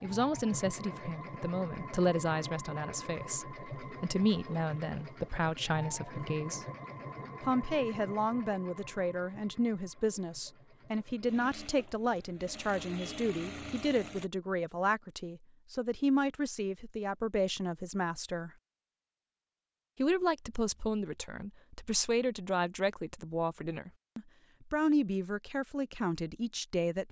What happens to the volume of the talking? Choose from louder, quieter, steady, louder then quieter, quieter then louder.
steady.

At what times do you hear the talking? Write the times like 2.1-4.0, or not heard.
0.0-6.7, 7.4-18.5, 19.9-27.0.